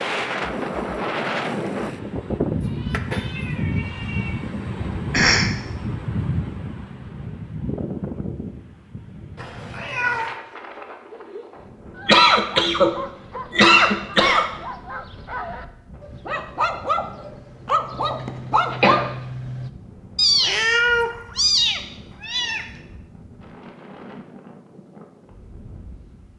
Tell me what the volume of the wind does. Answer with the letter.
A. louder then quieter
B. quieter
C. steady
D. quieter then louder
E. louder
B.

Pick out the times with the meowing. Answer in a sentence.
The meowing can be heard from 2.9 to 4.3 s, from 9.3 to 10.3 s and from 20.1 to 22.6 s.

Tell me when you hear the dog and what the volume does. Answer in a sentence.
You can hear the dog from 11.1 to 19.7 s, getting louder.